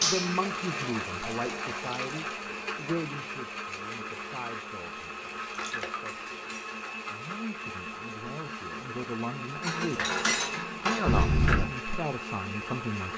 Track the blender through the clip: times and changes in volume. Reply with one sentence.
You can hear the blender from 0.0 to 13.1 s, at a steady volume.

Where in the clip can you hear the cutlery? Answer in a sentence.
You can hear the cutlery from 0.0 to 0.4 s, from 5.6 to 6.8 s and from 9.6 to 11.4 s.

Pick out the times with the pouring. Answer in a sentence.
The pouring can be heard from 0.4 to 2.4 s, from 5.4 to 6.2 s and from 11.1 to 11.7 s.